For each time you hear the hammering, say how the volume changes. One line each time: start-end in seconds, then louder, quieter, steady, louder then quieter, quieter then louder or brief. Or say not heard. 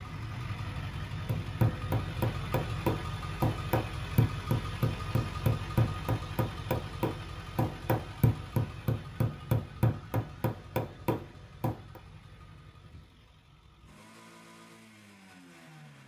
1.2-12.0 steady.